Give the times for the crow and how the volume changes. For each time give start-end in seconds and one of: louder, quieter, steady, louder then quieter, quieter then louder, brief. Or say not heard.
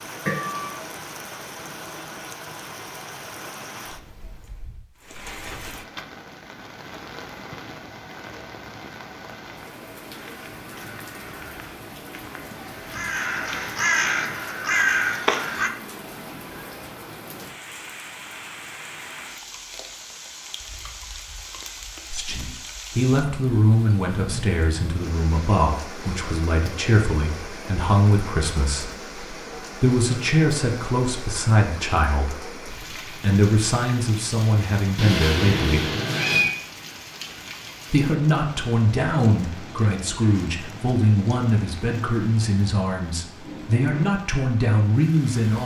10.1-15.7 louder.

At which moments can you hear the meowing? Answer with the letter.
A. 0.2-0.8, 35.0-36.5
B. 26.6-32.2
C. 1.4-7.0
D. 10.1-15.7
A.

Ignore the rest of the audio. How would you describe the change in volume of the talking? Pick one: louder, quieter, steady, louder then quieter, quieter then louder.
steady.